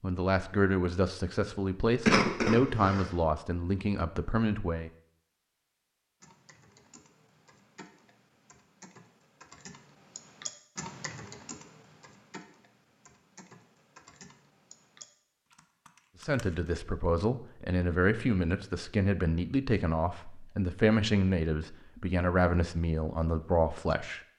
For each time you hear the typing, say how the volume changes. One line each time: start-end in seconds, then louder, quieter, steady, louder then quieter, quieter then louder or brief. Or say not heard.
6.2-16.8 louder then quieter.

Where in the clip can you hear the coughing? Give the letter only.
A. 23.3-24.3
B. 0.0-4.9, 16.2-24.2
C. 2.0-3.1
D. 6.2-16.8
C.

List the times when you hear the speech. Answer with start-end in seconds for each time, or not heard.
0.0-4.9, 16.2-24.2.